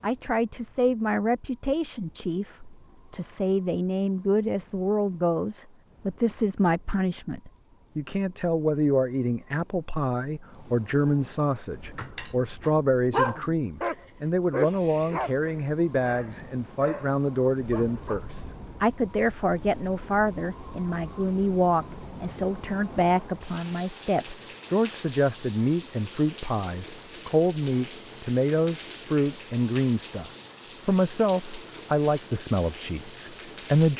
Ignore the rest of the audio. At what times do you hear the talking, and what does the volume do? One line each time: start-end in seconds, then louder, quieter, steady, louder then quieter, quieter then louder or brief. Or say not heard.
0.0-33.9 steady.